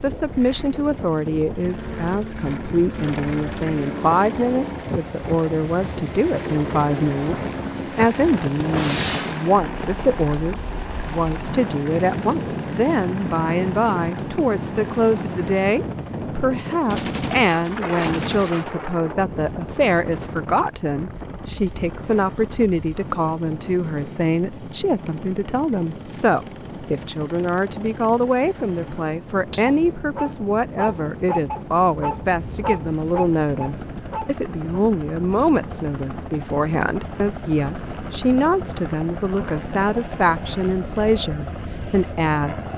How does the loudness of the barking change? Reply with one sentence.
The loudness of the barking stays about the same.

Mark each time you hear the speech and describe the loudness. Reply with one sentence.
The speech can be heard from 0.0 to 42.7 s, at a steady volume.